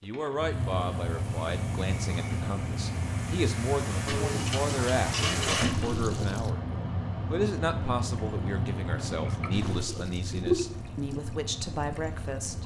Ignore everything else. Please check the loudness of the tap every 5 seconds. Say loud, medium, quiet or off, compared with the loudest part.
medium, loud, loud.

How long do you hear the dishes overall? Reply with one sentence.
You can hear the dishes for 2 seconds altogether.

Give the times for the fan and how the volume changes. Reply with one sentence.
The fan can be heard from 0.0 to 12.6 s, getting quieter.